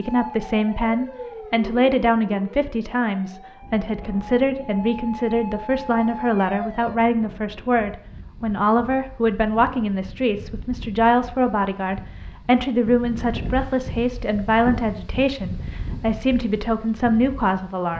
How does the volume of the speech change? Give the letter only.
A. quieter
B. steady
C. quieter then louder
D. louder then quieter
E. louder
B.